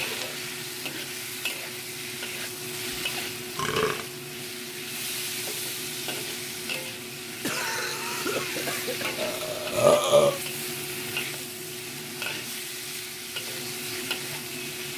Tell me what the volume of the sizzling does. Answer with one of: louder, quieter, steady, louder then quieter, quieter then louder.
steady.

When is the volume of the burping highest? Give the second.
10 s.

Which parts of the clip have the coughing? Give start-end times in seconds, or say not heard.
6.9-9.2.